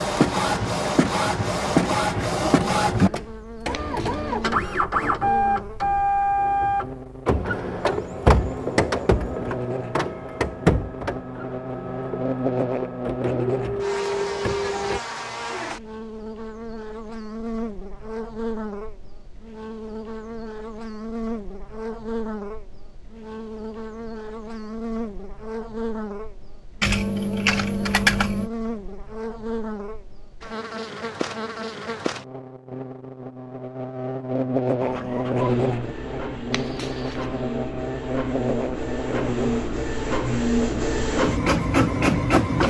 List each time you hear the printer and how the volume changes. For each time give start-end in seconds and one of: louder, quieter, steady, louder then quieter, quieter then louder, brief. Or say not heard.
0.0-15.0 quieter
34.8-42.6 louder.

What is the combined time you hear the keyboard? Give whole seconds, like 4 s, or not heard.
2 s.